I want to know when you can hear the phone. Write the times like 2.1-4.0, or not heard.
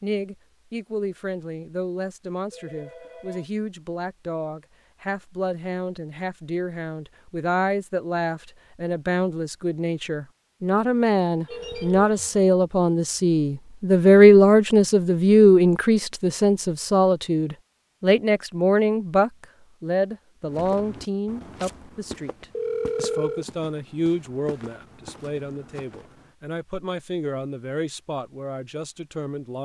2.5-3.5, 11.4-12.4, 22.5-23.4.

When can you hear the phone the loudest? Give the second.
23 s.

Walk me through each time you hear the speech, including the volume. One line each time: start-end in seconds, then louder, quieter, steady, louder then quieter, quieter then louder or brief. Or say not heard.
0.0-29.5 louder then quieter.